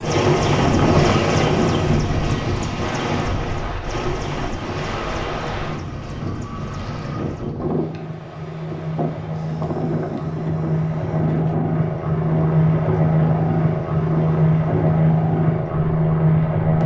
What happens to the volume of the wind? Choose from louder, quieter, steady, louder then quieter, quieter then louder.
quieter.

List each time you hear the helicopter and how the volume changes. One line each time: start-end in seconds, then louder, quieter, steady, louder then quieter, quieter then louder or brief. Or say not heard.
0.0-16.8 quieter then louder.